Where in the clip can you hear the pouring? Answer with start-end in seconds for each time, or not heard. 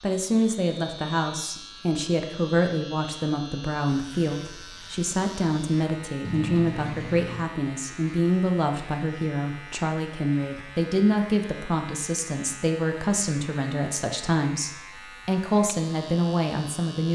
6.2-7.5.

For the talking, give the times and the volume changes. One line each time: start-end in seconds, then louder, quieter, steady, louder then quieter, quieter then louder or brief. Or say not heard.
0.0-17.1 steady.